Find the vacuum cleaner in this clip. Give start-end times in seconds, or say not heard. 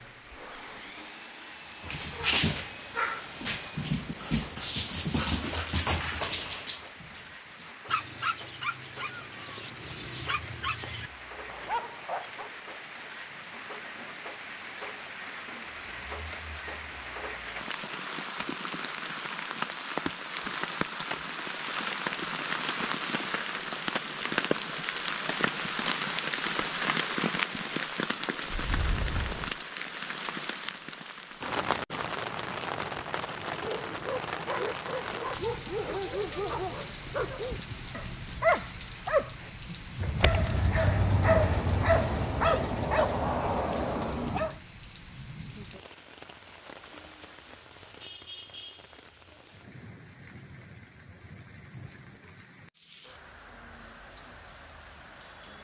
0.0-3.9.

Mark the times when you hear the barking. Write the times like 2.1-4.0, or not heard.
1.8-12.5, 33.6-44.6.